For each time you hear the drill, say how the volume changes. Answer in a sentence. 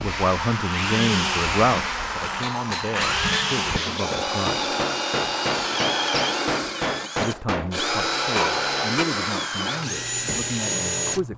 You can hear the drill from 0.0 to 11.3 s, at a steady volume.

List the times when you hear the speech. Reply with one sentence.
You can hear the speech from 0.0 to 4.7 s and from 7.2 to 11.3 s.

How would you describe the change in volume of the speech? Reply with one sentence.
The volume of the speech goes down.